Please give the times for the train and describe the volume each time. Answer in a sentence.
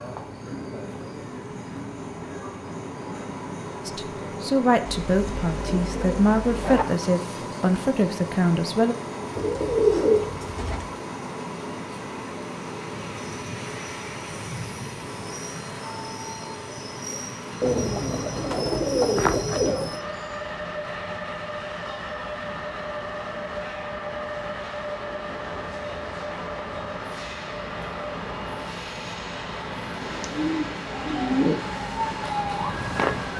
You can hear the train from 0.0 to 33.3 s, at a steady volume.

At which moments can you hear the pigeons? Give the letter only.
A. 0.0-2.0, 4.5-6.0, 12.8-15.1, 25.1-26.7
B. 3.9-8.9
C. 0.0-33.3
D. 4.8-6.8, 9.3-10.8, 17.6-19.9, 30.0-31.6
D.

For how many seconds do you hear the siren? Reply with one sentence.
The siren can be heard for 2 seconds in total.